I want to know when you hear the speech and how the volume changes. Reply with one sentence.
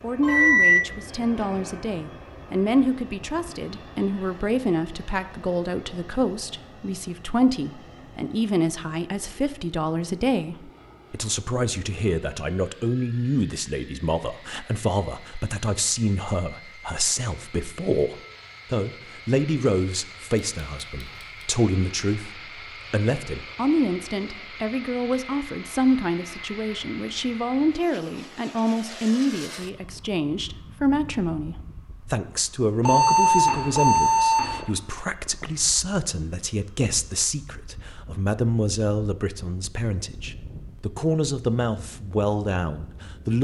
The speech can be heard from 0.0 to 43.3 s, at a steady volume.